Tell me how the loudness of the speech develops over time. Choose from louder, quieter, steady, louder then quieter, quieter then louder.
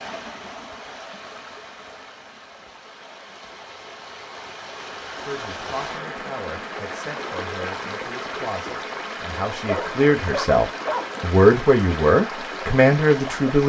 louder.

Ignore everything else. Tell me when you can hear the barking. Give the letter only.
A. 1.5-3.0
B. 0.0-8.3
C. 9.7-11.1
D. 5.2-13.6
C.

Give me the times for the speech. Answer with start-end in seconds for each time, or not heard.
5.2-13.6.